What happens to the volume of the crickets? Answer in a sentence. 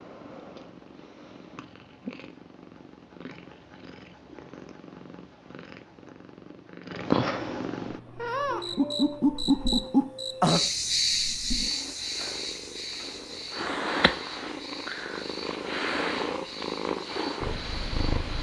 The volume of the crickets goes down.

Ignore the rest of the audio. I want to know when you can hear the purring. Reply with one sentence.
You can hear the purring from 0.0 to 18.3 s.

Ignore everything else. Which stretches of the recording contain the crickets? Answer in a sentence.
The crickets can be heard from 8.2 to 18.3 s.